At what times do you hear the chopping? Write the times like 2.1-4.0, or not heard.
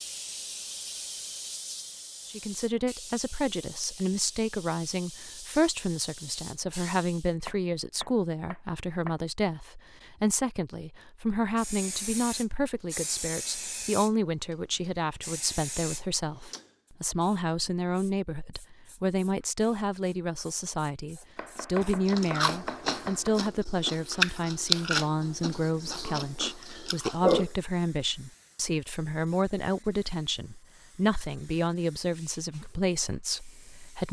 7.5-9.2, 21.4-23.5.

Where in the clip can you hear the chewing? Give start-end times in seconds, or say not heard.
21.8-27.5.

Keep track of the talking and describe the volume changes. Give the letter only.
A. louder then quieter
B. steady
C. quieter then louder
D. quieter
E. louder
B.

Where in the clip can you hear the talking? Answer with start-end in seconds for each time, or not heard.
2.2-34.0.